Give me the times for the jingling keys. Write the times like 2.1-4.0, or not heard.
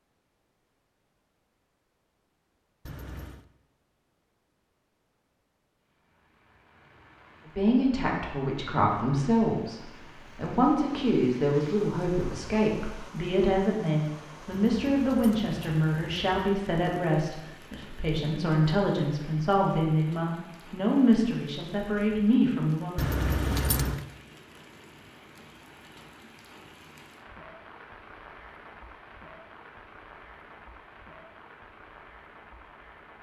2.9-3.5, 14.5-16.6, 22.9-24.1.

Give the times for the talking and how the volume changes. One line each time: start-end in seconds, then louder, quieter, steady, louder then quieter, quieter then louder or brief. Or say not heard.
7.5-23.1 steady.